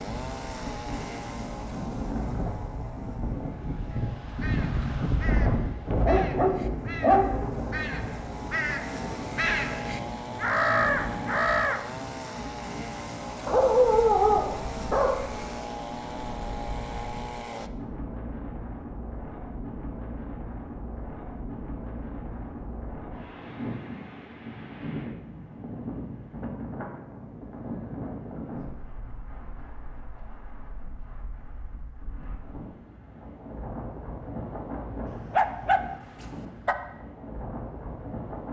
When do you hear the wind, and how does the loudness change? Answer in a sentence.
You can hear the wind from 0.0 to 38.4 s, getting quieter.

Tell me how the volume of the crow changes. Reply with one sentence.
The volume of the crow goes up.